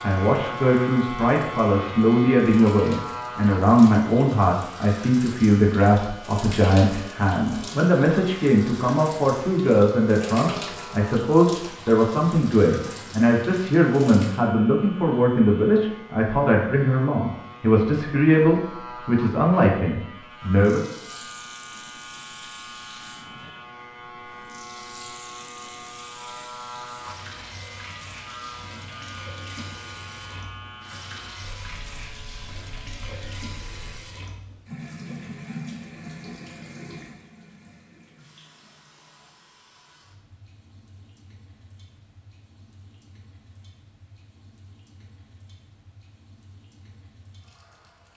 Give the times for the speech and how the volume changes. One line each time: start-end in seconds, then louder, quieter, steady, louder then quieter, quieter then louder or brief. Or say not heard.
0.0-20.8 steady.